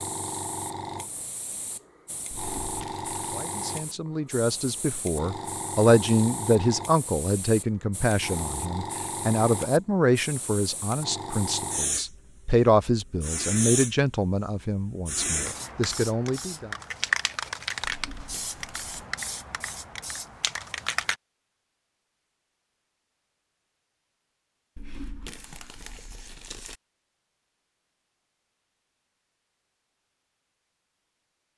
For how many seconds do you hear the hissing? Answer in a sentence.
You can hear the hissing for 21 seconds altogether.